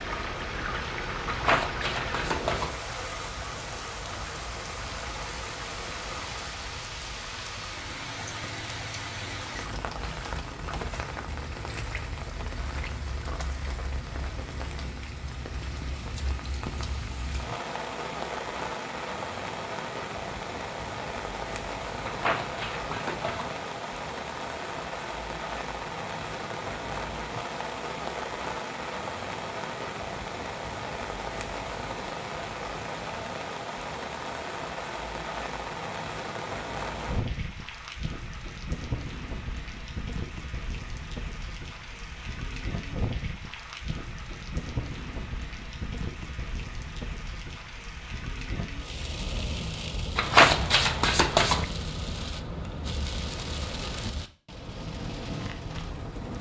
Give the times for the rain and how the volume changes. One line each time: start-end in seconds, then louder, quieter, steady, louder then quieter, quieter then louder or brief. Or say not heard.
0.0-56.3 steady.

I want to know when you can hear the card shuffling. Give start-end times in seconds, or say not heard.
1.2-2.8, 22.0-23.6, 50.1-51.6.